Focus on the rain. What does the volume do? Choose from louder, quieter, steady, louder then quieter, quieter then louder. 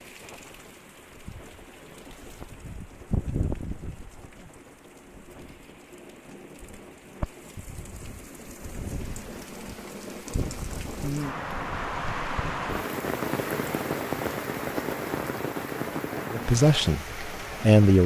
quieter then louder.